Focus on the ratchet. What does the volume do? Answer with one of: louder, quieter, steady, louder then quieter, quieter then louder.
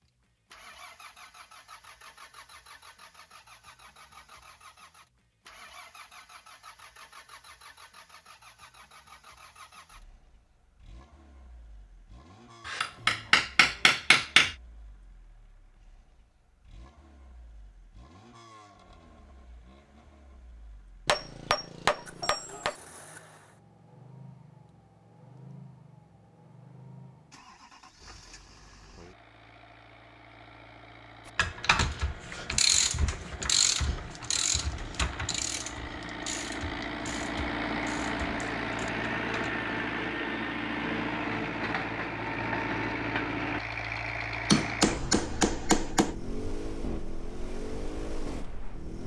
quieter.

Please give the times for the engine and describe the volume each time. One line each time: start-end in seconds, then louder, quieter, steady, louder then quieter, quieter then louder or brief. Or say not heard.
0.0-49.0 quieter then louder.